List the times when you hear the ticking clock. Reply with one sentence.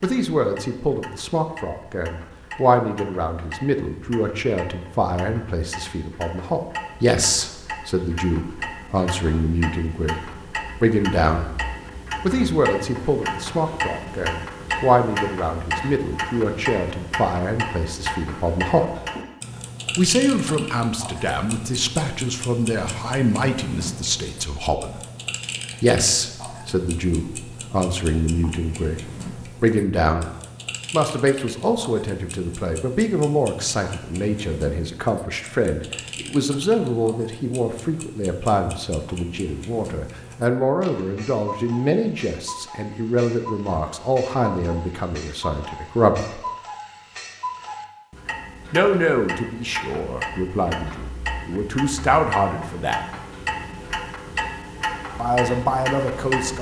You can hear the ticking clock from 0.0 to 56.5 s.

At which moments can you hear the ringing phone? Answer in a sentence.
The ringing phone can't be heard in this clip.